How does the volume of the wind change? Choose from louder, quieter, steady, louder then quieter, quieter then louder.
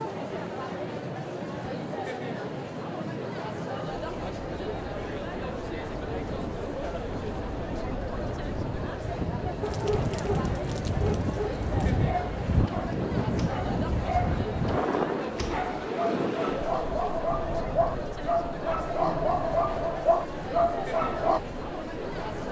louder then quieter.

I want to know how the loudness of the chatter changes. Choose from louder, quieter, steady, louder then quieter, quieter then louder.
steady.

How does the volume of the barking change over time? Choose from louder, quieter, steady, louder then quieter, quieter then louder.
louder.